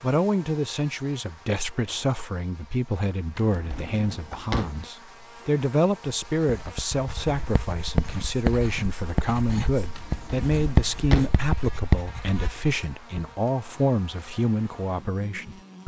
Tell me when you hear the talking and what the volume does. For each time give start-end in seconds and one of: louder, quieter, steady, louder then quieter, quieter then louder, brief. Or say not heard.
0.0-15.8 steady.